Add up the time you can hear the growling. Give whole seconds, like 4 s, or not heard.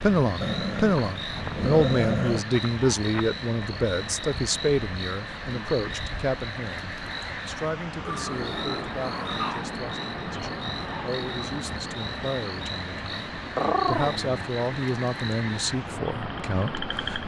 4 s.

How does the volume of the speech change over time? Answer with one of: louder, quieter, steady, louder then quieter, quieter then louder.
quieter then louder.